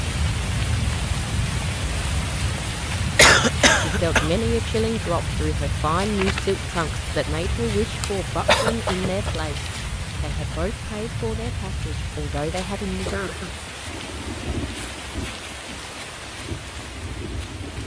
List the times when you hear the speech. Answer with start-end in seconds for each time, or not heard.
3.8-13.1.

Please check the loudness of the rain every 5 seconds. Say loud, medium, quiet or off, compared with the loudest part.
loud, loud, medium, medium.